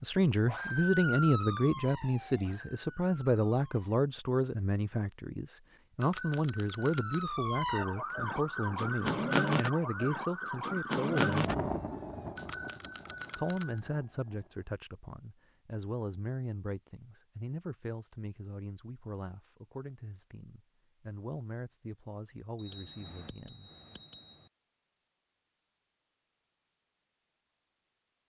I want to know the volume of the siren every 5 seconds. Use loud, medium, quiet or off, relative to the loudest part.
medium, loud, loud, off, off, off.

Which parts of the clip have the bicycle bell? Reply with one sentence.
The bicycle bell can be heard from 6.0 to 7.2 s, from 12.3 to 13.8 s and from 22.6 to 24.5 s.